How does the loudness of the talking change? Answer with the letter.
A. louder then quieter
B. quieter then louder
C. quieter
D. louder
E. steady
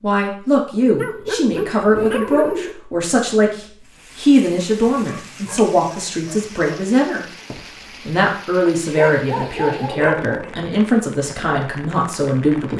E.